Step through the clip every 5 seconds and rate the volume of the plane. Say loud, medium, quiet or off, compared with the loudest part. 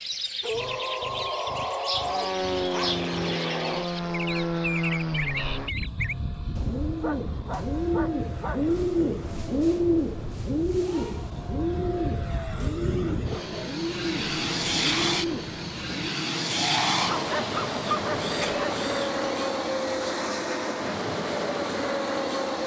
loud, medium, loud, loud, loud.